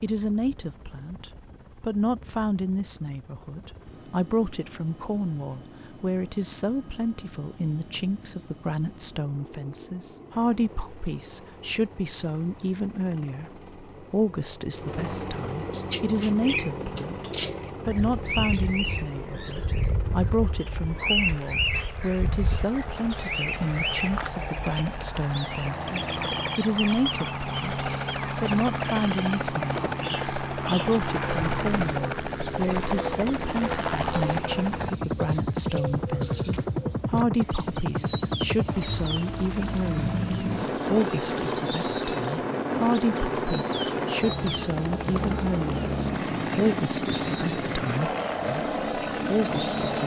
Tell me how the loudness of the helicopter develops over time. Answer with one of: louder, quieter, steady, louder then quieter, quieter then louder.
louder.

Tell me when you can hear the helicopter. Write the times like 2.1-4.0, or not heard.
0.0-50.0.